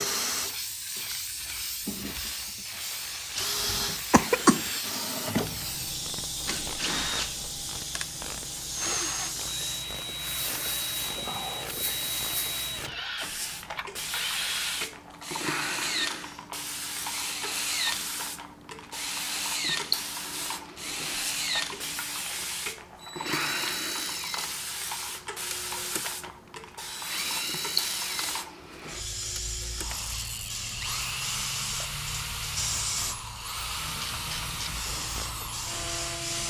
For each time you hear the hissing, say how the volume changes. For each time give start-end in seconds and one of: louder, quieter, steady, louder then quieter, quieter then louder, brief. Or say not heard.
0.2-36.4 steady.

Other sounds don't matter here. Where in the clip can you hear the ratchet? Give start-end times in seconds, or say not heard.
1.9-13.1, 33.7-36.4.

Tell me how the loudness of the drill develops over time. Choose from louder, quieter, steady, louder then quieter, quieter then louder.
steady.